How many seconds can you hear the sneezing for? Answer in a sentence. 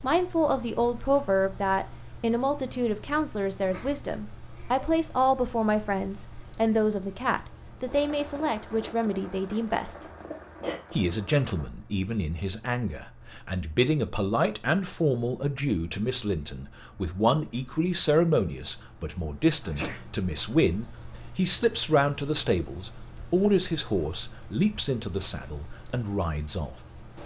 You can hear the sneezing for 2 seconds altogether.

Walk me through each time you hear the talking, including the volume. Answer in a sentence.
You can hear the talking from 0.0 to 10.1 s, at a steady volume; and from 10.9 to 26.8 s, at a steady volume.